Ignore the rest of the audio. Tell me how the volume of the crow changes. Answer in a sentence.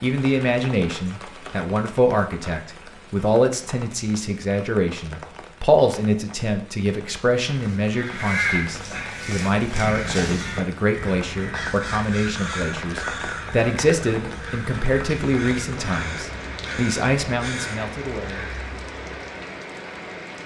The loudness of the crow goes down.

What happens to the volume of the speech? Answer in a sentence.
The volume of the speech stays about the same.